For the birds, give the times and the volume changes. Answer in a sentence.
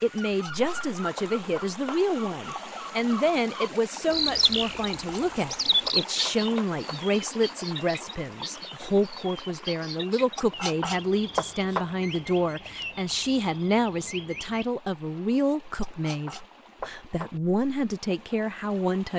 You can hear the birds from 0.0 to 14.7 s, getting louder then quieter.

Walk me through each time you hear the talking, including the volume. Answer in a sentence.
You can hear the talking from 0.0 to 19.1 s, at a steady volume.